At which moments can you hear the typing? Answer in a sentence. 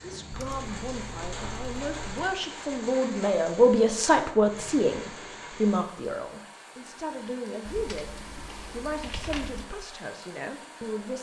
The typing can be heard from 0.3 to 2.3 s and from 7.7 to 9.7 s.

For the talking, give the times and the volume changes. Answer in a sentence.
You can hear the talking from 0.0 to 8.1 s, getting louder then quieter; and briefly from 8.7 to 11.1 s.